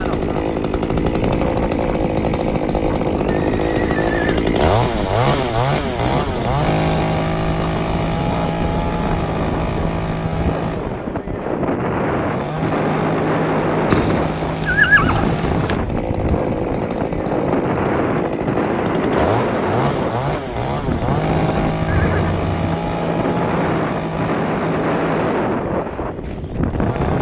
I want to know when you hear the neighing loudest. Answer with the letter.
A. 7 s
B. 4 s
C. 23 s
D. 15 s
D.